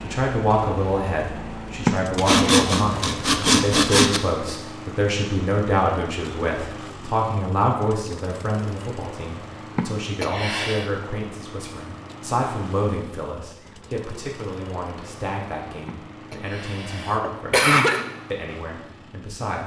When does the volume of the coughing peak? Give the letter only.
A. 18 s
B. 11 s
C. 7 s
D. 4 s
A.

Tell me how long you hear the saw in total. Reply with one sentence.
You can hear the saw for 2 seconds altogether.